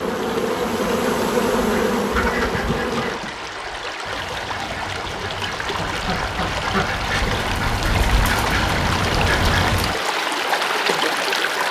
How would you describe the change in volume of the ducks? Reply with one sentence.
The volume of the ducks goes down, then up.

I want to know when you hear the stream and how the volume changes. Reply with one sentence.
The stream can be heard from 0.0 to 11.6 s, getting louder.